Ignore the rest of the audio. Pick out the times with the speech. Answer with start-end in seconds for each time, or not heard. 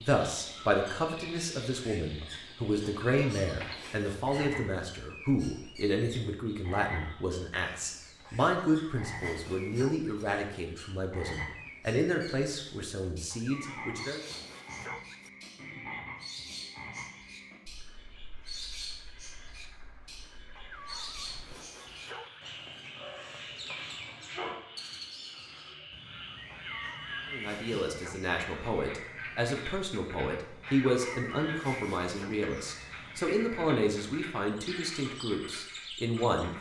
0.0-14.2, 27.3-36.5.